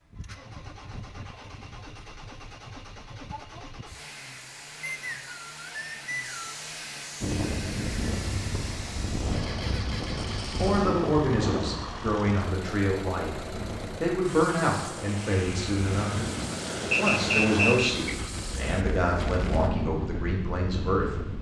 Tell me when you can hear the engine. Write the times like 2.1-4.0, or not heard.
0.0-18.9.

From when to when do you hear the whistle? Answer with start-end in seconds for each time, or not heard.
4.8-6.6, 16.9-18.1.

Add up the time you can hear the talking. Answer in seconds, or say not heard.
10 s.